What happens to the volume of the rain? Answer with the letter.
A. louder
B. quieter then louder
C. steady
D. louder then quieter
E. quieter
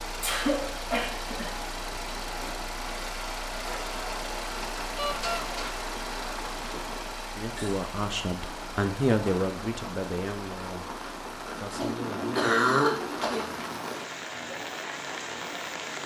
A.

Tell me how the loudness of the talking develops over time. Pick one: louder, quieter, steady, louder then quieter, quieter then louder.
louder then quieter.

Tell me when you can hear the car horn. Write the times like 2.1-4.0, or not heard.
5.0-5.5.